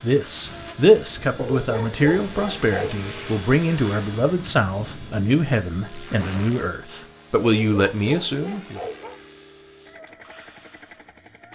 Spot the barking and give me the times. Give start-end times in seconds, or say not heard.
1.4-3.0, 7.4-9.2.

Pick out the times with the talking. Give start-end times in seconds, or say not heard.
0.0-8.8.